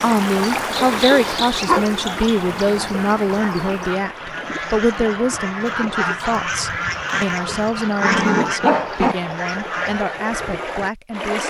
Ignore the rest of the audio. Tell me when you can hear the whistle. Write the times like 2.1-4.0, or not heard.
not heard.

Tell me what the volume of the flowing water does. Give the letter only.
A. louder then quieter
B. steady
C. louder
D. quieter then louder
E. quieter
D.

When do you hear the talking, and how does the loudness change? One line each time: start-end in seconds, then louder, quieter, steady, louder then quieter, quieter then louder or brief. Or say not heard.
0.0-11.4 quieter.